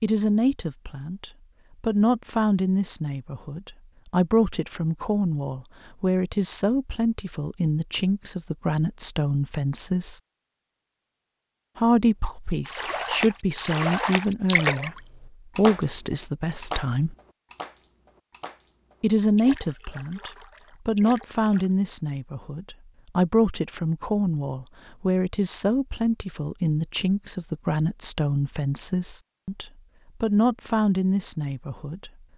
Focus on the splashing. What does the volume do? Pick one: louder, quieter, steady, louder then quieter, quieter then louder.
quieter.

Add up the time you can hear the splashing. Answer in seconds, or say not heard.
9 s.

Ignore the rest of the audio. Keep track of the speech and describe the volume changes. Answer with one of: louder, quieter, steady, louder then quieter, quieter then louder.
steady.